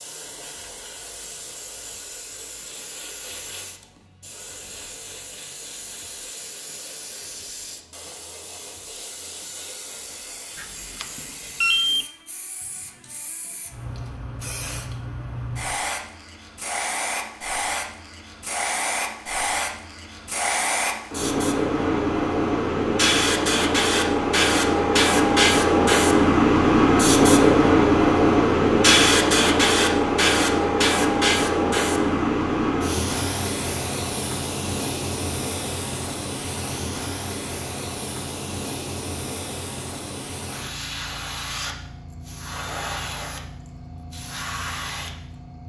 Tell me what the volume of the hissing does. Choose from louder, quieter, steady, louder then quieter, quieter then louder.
louder then quieter.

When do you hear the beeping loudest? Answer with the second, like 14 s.
12 s.